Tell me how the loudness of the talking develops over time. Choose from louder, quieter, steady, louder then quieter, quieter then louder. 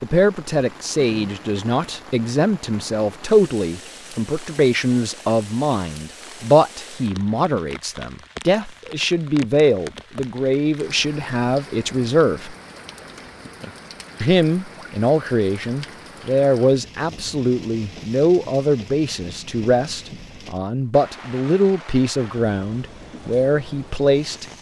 steady.